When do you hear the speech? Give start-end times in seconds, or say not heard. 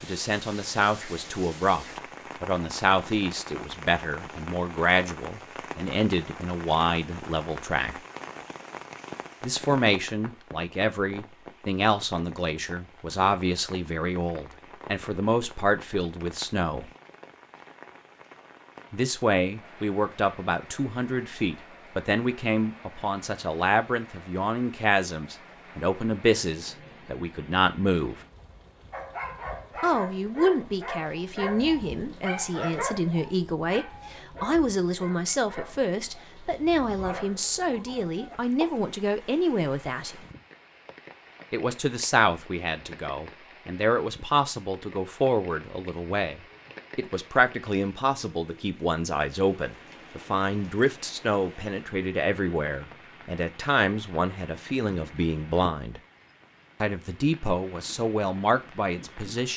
0.0-8.0, 9.4-16.9, 18.9-28.2, 29.8-40.2, 41.5-56.0, 56.8-59.5.